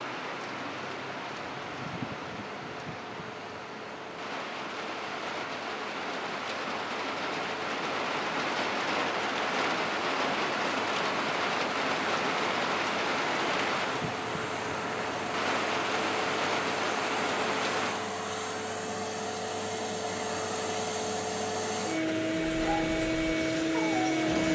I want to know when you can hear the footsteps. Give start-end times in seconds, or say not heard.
not heard.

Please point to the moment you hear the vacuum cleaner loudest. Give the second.
24 s.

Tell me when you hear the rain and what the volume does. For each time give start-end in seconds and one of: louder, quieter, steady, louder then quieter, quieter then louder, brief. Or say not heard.
0.0-18.1 louder.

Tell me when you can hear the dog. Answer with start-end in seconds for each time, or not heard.
22.5-24.4.